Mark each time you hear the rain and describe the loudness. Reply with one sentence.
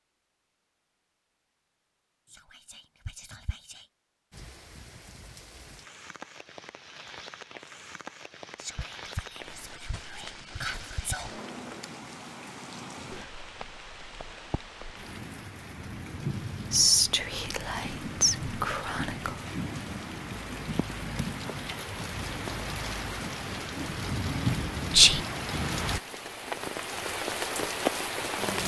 The rain can be heard from 4.3 to 28.6 s, getting louder.